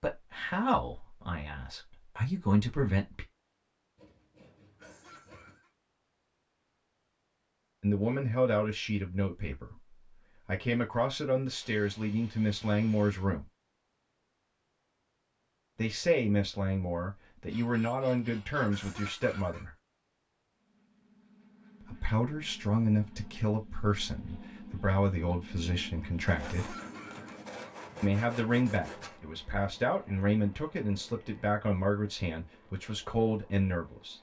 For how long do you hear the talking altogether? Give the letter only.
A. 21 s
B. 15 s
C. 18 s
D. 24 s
D.